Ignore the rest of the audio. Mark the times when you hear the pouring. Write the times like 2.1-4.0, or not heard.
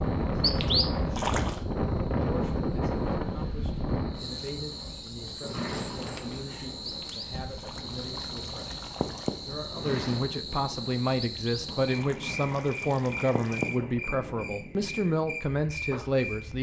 0.4-1.6, 6.8-9.3, 11.2-13.7.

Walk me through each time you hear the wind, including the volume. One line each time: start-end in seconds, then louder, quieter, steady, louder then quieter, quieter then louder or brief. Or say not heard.
0.0-16.5 quieter.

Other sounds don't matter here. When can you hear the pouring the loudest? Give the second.
1 s.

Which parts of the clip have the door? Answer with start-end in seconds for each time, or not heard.
5.4-6.5, 9.7-10.3.